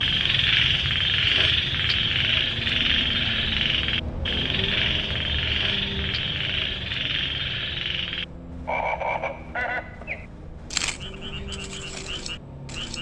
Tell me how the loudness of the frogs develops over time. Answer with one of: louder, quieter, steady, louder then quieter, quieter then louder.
quieter.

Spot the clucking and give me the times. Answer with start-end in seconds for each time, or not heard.
not heard.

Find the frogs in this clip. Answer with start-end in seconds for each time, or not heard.
0.0-12.9.